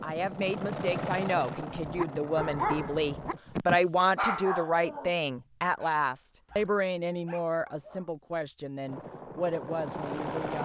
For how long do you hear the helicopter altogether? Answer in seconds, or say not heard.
5 s.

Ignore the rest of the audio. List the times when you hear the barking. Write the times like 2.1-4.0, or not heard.
1.8-8.1.